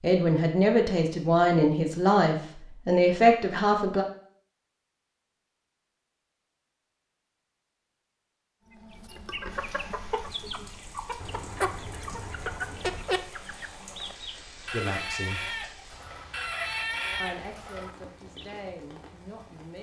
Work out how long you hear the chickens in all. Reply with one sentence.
You can hear the chickens for 10 seconds altogether.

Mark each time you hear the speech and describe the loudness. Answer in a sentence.
The speech can be heard from 0.0 to 4.0 s, at a steady volume; briefly from 14.7 to 15.4 s; and briefly from 17.2 to 19.7 s.